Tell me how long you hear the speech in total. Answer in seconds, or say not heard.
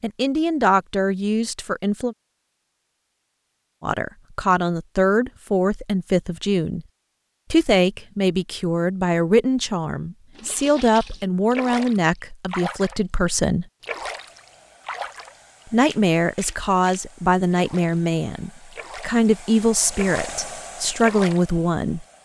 18 s.